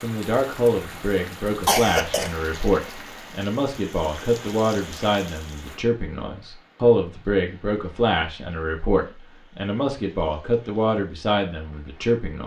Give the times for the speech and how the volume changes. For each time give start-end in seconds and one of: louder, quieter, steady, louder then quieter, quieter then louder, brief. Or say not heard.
0.0-12.4 steady.